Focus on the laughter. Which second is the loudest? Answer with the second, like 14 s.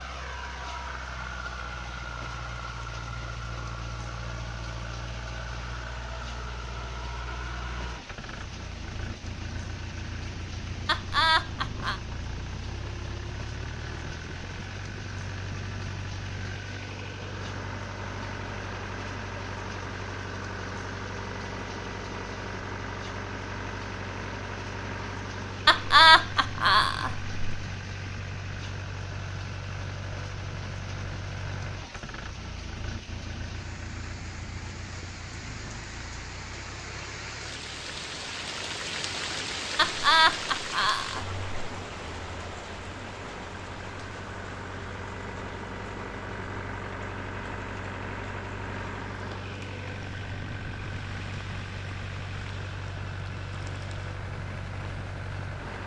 26 s.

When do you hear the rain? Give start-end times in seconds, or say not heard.
0.0-55.8.